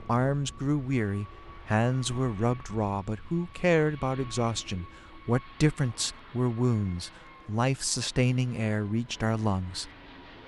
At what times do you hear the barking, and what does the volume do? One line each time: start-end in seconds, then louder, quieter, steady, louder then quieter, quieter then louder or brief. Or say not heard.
not heard.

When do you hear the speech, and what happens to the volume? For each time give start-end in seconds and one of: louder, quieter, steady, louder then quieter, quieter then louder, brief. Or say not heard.
0.1-9.9 steady.